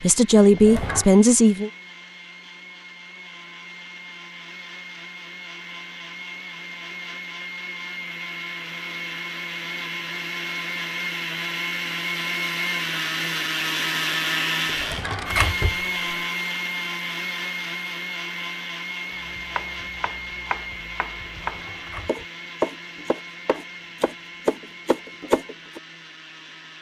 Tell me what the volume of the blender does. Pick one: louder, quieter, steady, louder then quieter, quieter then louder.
louder then quieter.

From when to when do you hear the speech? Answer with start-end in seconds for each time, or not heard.
0.0-1.7.